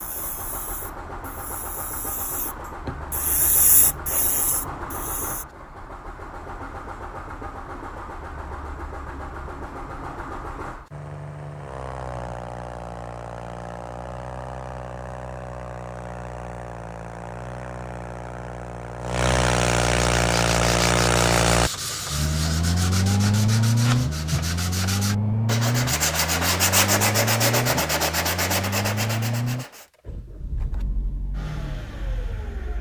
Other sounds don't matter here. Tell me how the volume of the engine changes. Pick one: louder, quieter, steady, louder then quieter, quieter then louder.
louder then quieter.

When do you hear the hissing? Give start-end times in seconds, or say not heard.
0.0-5.5.